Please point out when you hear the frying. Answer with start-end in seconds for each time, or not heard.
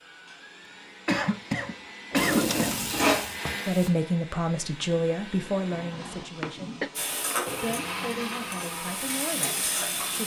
2.1-3.9, 7.0-10.2.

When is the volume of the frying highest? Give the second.
3 s.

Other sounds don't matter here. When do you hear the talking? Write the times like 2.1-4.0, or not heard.
3.6-10.2.